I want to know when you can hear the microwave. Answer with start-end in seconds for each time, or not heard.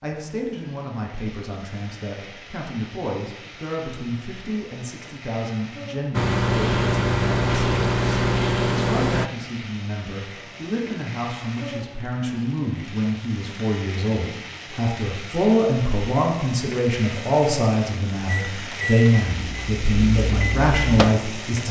6.1-9.3, 18.5-21.6.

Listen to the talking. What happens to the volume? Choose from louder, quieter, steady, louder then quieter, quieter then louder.
louder.